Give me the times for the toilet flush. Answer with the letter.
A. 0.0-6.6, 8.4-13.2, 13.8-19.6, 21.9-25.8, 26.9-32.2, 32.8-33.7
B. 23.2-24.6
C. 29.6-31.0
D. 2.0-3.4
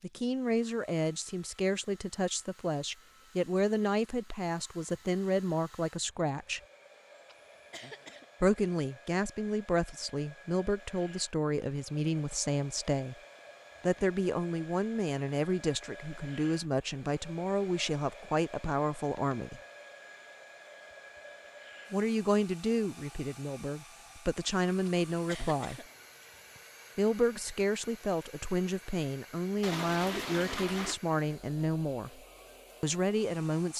C.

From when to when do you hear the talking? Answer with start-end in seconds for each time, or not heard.
0.0-6.6, 8.4-13.2, 13.8-19.6, 21.9-25.8, 26.9-32.2, 32.8-33.7.